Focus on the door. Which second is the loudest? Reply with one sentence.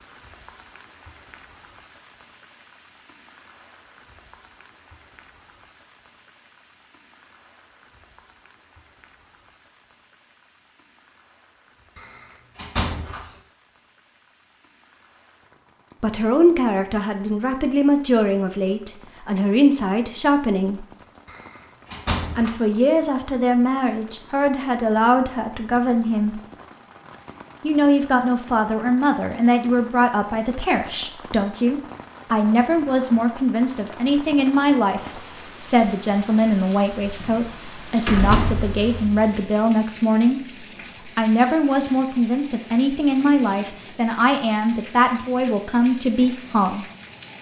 The loudest moment of the door is at 38 seconds.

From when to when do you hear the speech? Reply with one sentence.
The speech can be heard from 16.0 to 20.9 s, from 22.4 to 26.4 s, from 27.6 to 40.4 s and from 41.0 to 46.9 s.